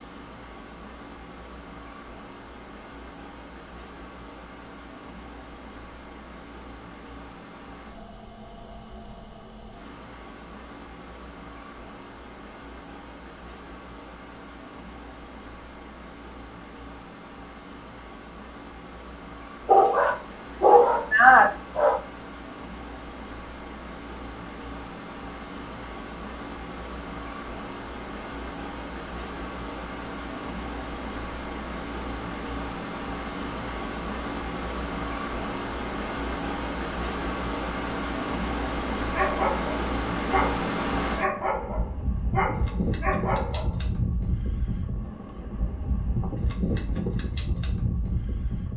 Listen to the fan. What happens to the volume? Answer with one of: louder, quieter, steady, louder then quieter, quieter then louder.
louder.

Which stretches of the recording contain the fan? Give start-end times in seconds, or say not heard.
0.0-48.7.